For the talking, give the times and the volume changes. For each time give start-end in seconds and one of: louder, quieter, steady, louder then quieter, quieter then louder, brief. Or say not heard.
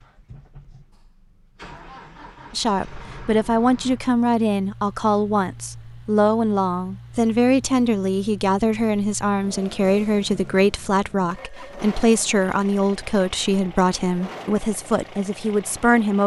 2.5-16.2 steady.